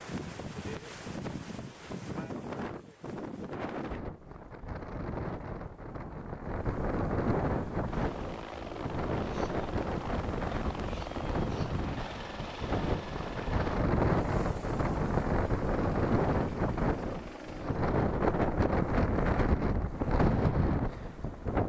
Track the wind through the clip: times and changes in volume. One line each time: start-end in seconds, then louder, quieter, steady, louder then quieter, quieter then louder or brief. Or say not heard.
0.0-21.6 louder.